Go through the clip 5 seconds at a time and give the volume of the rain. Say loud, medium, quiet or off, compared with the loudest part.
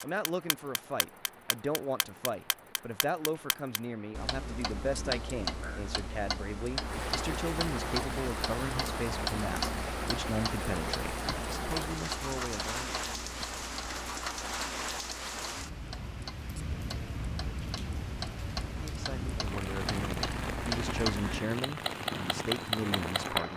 quiet, loud, loud, loud, loud.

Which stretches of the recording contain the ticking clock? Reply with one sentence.
You can hear the ticking clock from 0.0 to 23.5 s.